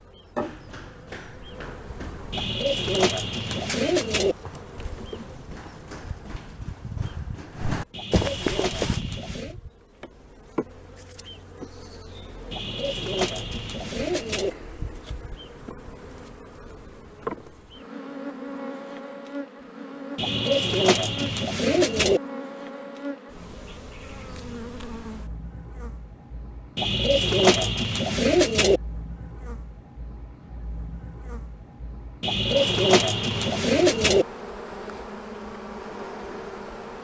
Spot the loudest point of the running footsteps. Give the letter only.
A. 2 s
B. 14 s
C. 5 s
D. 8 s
D.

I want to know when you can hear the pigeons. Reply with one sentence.
You can hear the pigeons from 2.3 to 4.3 s, from 7.9 to 9.6 s, from 12.5 to 14.5 s, from 20.1 to 22.2 s, from 26.8 to 28.8 s and from 32.2 to 34.2 s.